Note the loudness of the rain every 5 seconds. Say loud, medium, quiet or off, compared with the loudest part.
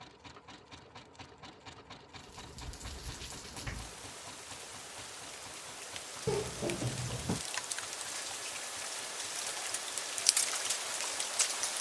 quiet, medium, loud.